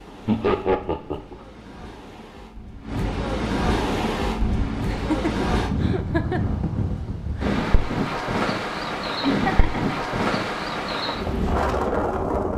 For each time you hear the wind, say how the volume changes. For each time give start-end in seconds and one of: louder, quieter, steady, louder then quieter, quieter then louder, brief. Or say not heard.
0.0-12.5 louder.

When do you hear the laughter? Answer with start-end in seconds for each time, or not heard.
0.2-1.4, 4.8-6.4, 9.2-9.8.